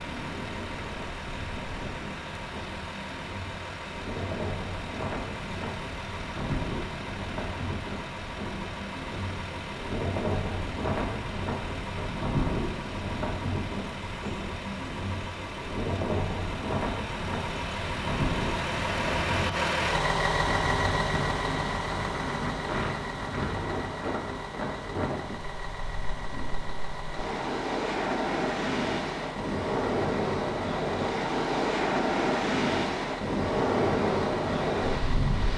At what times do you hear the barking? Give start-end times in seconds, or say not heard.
not heard.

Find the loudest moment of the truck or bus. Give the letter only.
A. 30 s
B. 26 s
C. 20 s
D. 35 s
C.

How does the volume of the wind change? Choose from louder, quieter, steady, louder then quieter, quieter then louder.
louder.